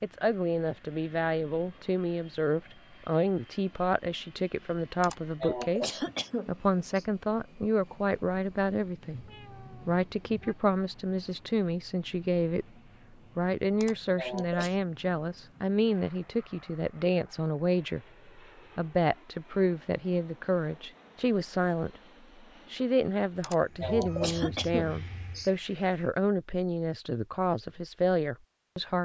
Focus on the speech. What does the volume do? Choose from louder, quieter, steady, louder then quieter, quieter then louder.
steady.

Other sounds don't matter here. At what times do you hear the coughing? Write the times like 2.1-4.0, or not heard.
5.0-7.0, 13.8-14.8, 23.4-25.5.